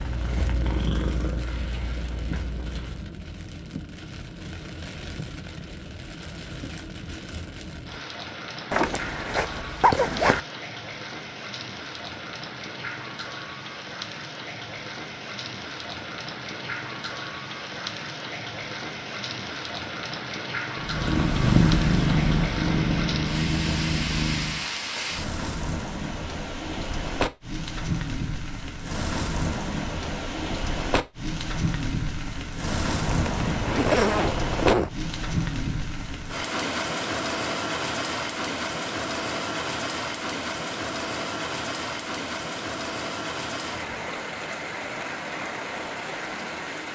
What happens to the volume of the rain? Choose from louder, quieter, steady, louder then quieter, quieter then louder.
louder.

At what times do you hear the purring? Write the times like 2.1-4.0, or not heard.
0.0-3.1, 20.8-24.6.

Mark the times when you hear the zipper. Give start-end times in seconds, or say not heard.
8.7-10.4, 33.0-34.9.